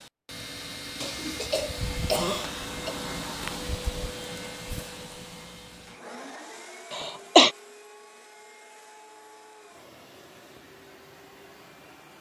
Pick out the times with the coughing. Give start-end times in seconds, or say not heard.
1.0-3.0, 6.9-7.5.